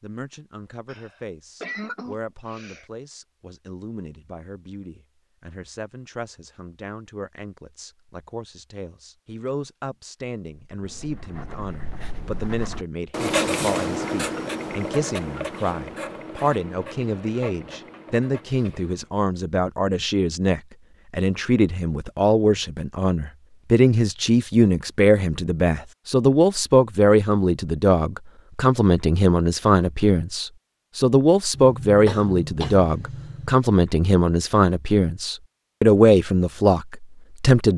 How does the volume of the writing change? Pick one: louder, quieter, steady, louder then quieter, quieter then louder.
louder then quieter.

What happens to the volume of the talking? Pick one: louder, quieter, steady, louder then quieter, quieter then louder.
louder.